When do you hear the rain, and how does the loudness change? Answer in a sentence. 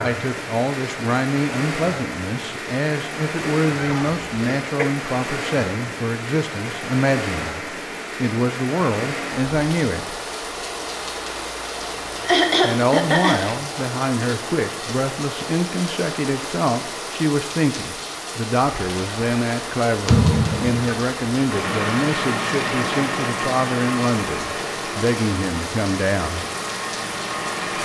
You can hear the rain from 0.0 to 27.7 s, at a steady volume.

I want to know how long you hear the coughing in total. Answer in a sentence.
The coughing can be heard for 3 seconds in total.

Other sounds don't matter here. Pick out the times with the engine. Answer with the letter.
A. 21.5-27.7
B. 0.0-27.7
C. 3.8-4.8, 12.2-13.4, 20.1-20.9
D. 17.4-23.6
A.